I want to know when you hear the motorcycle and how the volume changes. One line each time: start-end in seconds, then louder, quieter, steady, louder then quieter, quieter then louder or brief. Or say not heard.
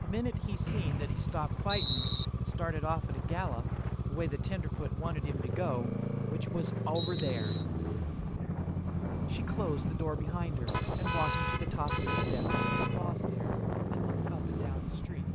0.0-15.3 steady.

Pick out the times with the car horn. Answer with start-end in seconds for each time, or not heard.
10.7-13.1.